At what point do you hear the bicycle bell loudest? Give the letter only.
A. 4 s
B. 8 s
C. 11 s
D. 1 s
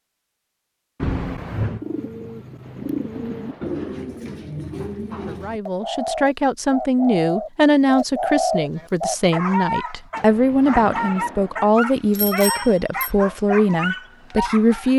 D.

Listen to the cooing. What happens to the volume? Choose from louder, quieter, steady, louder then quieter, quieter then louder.
louder.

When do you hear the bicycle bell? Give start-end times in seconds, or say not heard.
1.0-1.9, 12.1-13.1.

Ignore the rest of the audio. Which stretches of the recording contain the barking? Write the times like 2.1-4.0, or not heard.
8.8-14.9.